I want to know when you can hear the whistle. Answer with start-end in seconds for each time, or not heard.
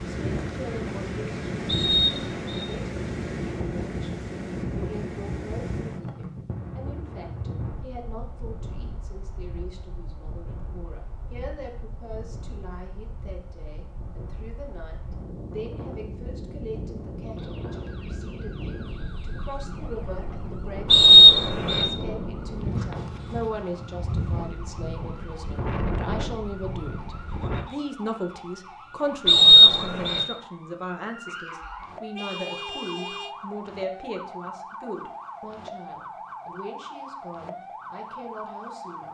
1.6-2.6, 20.9-21.9, 29.2-30.2.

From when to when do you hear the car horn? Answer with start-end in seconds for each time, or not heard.
32.1-33.4.